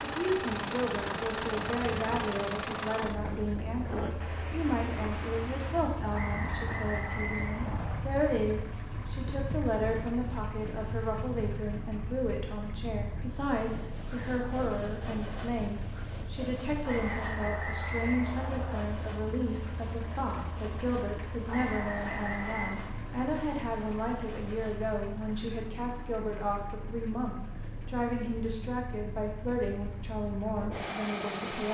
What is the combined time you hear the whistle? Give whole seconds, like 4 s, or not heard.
5 s.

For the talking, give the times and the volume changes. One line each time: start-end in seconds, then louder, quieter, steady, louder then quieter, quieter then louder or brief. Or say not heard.
0.0-31.6 steady.